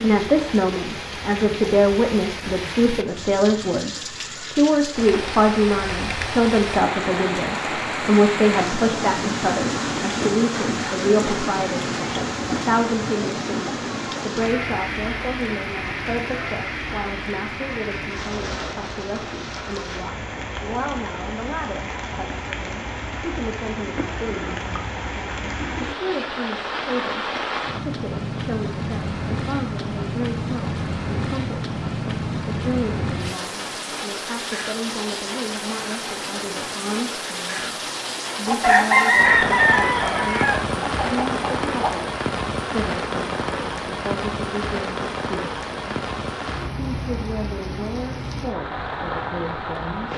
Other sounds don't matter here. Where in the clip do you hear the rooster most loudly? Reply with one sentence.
The loudest moment of the rooster is at 39 seconds.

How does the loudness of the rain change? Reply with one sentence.
The volume of the rain stays about the same.